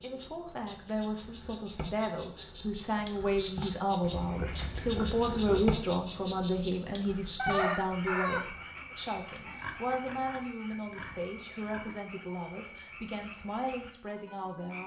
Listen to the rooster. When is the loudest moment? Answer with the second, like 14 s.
8 s.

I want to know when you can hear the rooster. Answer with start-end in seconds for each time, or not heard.
7.3-9.1.